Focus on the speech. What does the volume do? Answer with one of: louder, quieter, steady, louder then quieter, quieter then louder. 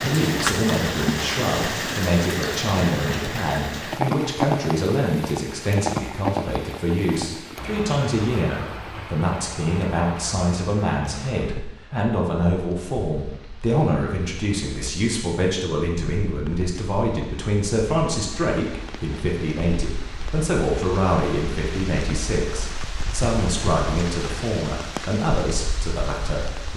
steady.